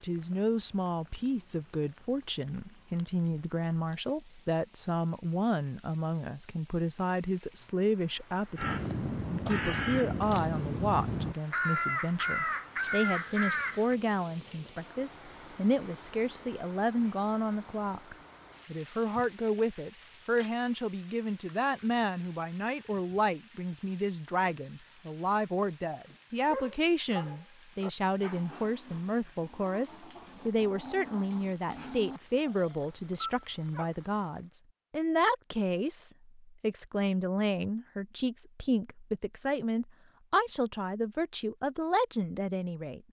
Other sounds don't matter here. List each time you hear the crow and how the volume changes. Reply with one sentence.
The crow can be heard from 8.6 to 13.9 s, at a steady volume.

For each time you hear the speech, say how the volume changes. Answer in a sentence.
The speech can be heard from 0.0 to 43.0 s, at a steady volume.